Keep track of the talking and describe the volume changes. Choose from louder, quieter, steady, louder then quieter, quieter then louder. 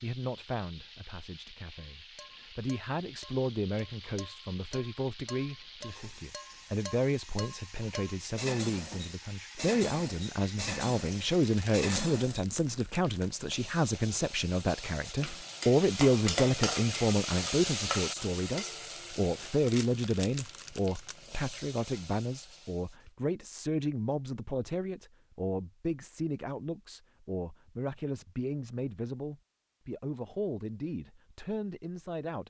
louder then quieter.